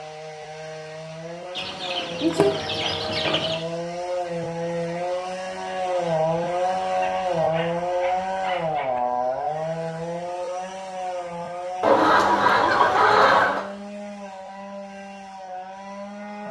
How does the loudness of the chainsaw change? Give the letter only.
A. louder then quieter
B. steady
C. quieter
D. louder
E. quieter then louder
A.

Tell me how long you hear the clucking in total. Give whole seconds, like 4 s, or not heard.
4 s.